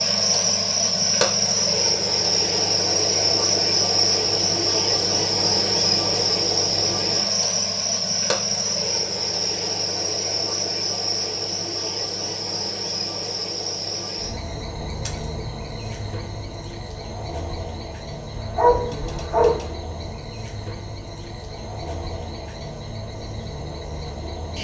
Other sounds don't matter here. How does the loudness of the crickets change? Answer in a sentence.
The volume of the crickets goes down.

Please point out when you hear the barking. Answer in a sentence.
The barking can be heard from 18.4 to 19.7 s.